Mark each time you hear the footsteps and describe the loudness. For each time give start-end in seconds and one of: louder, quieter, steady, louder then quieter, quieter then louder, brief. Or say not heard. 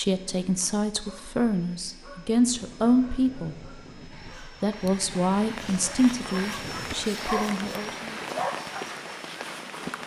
not heard.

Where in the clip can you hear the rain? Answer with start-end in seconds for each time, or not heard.
4.7-10.0.